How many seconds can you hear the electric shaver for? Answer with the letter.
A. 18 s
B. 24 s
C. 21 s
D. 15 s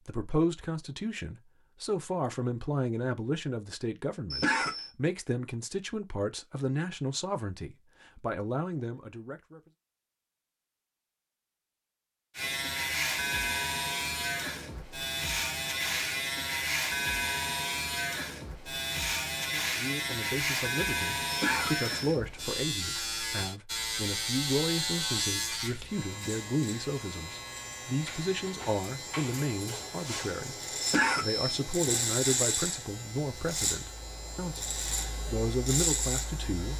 B.